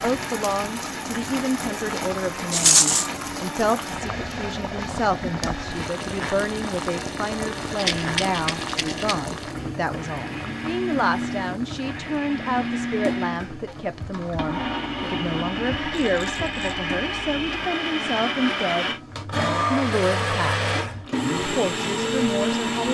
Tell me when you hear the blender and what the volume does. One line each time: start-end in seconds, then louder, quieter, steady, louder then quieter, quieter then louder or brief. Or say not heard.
0.0-22.8 louder.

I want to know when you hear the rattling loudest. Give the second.
3 s.